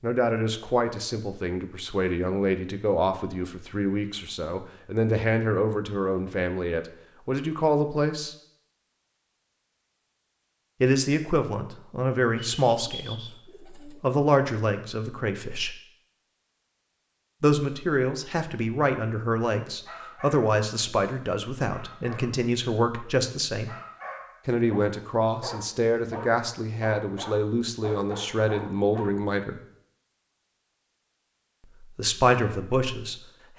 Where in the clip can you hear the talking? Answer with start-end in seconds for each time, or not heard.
0.0-8.3, 10.8-15.7, 17.4-23.7, 24.4-29.6, 31.8-33.2.